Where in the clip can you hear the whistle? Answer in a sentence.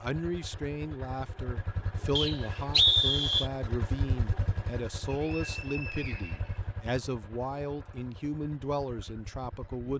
The whistle can be heard from 2.1 to 3.5 s and from 5.1 to 6.6 s.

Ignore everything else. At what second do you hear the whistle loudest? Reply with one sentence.
The loudest moment of the whistle is at 3 seconds.